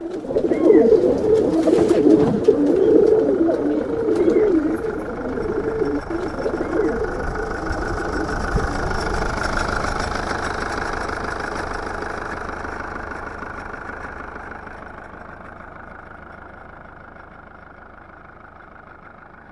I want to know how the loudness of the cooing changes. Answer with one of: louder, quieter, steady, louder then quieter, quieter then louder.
quieter.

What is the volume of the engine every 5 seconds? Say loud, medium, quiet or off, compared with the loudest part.
medium, loud, loud, quiet.